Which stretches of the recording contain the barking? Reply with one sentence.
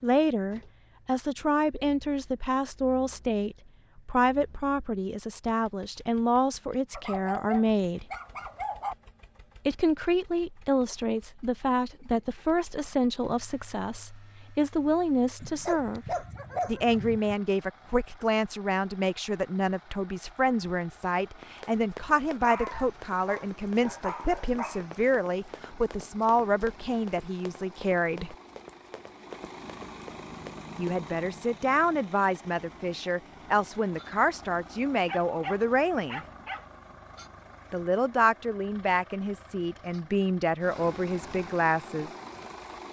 The barking can be heard from 6.9 to 8.9 s, from 15.4 to 17.4 s, from 22.4 to 25.0 s and from 35.0 to 36.6 s.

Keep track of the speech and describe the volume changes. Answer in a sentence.
The volume of the speech stays about the same.